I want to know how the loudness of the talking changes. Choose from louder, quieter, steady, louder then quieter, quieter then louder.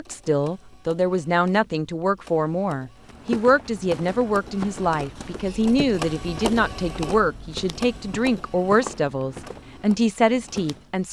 steady.